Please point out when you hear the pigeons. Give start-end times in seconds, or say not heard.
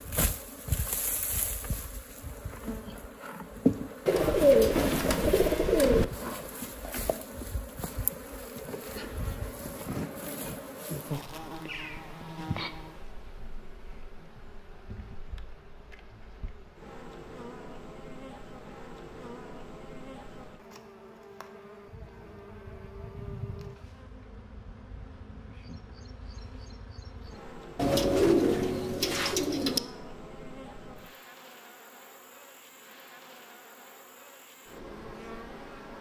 4.0-6.0, 27.8-29.8.